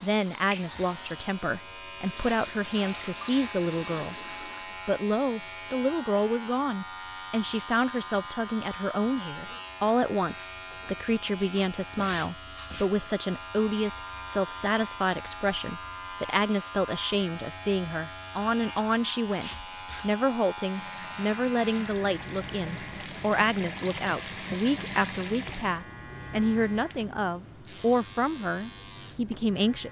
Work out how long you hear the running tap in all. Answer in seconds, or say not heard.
10 s.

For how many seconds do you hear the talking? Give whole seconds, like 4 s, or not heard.
29 s.